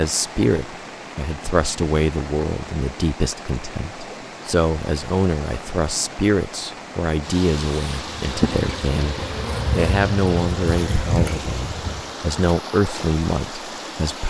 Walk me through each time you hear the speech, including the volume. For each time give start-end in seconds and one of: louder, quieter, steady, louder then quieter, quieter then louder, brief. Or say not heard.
0.0-14.2 steady.